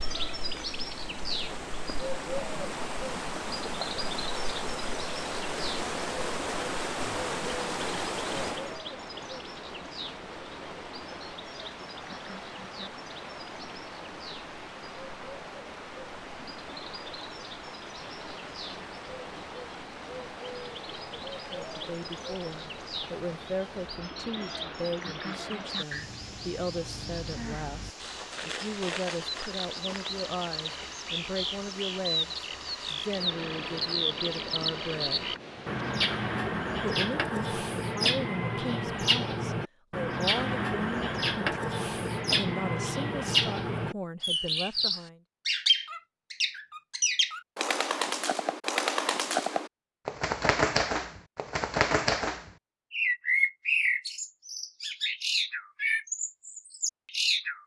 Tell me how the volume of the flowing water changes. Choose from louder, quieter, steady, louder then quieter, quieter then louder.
quieter.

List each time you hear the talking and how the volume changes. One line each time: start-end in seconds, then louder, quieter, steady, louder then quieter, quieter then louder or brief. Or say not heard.
21.5-35.4 steady
36.8-45.2 steady.